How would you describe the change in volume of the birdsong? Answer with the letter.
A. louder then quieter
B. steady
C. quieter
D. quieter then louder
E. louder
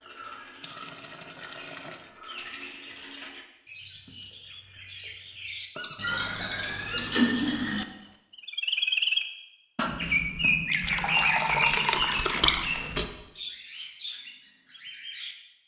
A.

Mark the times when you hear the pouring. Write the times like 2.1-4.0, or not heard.
0.6-2.1, 6.0-7.8, 10.7-12.7.